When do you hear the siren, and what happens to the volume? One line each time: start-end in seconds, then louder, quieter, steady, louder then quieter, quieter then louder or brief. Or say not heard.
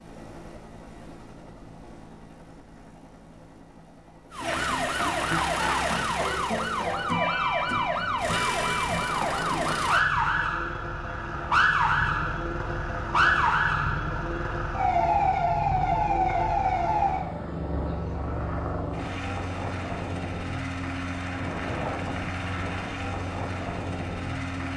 4.3-17.3 steady.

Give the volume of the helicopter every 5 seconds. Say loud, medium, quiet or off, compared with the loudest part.
quiet, medium, loud, loud, loud.